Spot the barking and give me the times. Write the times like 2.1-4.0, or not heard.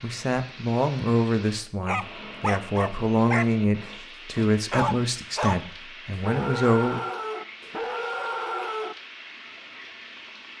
1.9-8.9.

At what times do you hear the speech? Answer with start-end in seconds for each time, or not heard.
0.0-7.0.